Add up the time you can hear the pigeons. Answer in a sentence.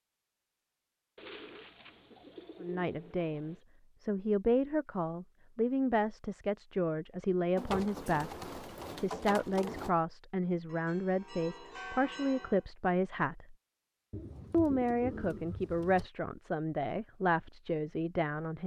You can hear the pigeons for 7 seconds altogether.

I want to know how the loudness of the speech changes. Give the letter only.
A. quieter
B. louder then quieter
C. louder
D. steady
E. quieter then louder
D.